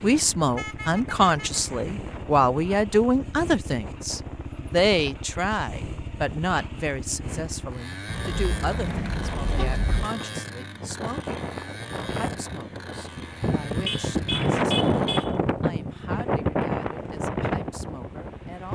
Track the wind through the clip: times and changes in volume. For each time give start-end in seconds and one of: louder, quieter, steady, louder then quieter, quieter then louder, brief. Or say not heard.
0.0-18.6 louder.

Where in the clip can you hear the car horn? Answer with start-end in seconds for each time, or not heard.
0.6-1.6, 8.1-10.1, 13.8-15.3.